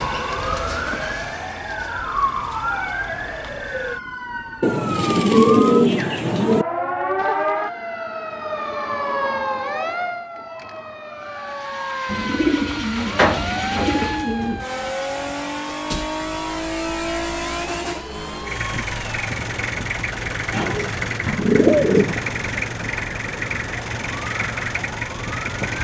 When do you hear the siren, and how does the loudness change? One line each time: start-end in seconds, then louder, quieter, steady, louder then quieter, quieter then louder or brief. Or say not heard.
0.0-25.7 quieter.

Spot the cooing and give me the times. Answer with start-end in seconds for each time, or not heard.
4.6-6.7, 12.1-14.7, 20.5-22.2.